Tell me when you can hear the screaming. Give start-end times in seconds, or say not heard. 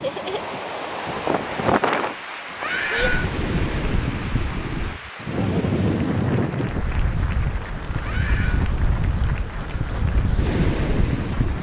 2.6-3.3, 8.0-8.7.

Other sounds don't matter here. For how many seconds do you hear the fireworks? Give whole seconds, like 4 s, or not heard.
not heard.